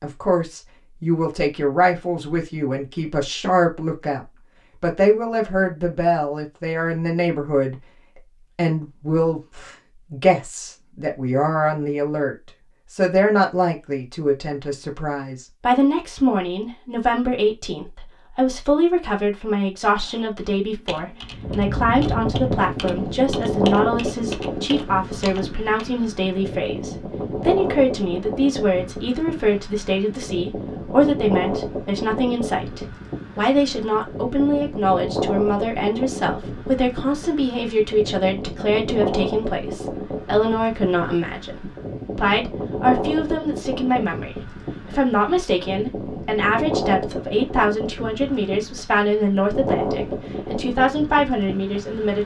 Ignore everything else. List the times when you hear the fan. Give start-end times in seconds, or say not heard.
21.3-52.2.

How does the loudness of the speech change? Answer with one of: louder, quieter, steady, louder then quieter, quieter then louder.
steady.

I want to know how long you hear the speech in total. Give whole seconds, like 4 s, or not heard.
52 s.